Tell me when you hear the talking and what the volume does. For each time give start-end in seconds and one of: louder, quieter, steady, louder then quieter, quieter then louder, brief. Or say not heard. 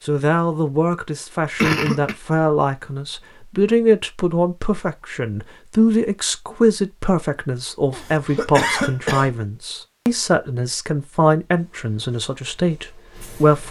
0.1-13.6 steady.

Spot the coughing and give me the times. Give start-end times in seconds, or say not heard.
1.6-2.1, 7.9-9.3.